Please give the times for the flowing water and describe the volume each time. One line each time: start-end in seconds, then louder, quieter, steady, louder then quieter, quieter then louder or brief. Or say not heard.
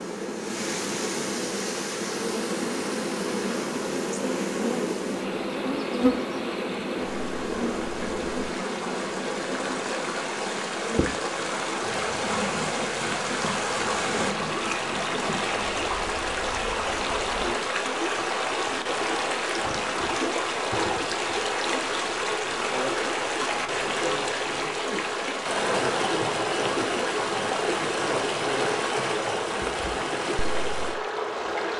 0.0-31.7 louder.